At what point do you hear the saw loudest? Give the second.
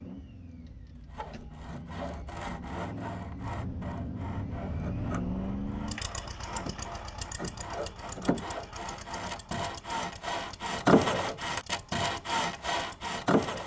11 s.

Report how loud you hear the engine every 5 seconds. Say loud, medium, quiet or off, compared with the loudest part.
loud, loud, quiet.